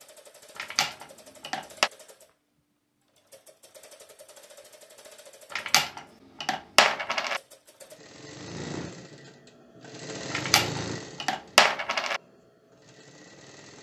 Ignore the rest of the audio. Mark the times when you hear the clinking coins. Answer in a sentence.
The clinking coins can be heard from 0.6 to 1.9 s, from 5.5 to 7.4 s and from 10.3 to 12.2 s.